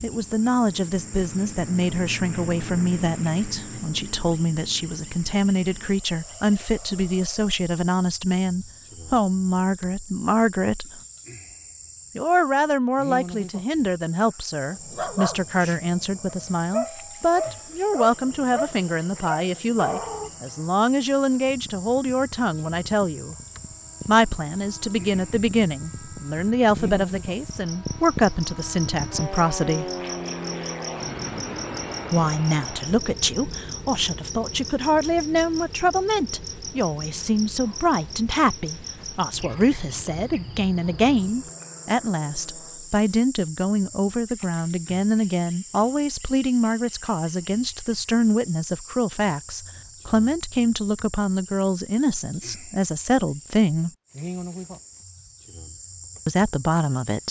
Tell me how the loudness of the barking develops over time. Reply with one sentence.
The volume of the barking goes up.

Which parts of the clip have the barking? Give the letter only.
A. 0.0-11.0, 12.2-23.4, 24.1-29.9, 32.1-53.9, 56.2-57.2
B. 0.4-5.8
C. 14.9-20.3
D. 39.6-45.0
C.